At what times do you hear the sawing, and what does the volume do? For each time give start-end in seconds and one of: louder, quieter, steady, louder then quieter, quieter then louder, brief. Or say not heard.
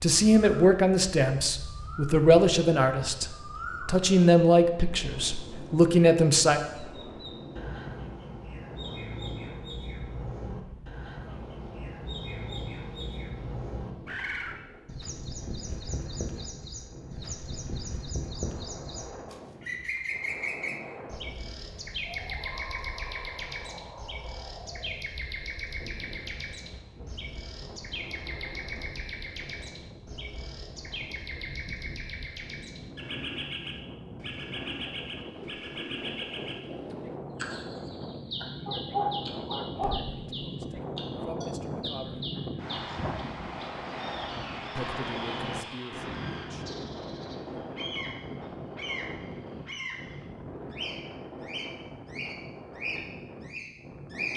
not heard.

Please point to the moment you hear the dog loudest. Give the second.
39 s.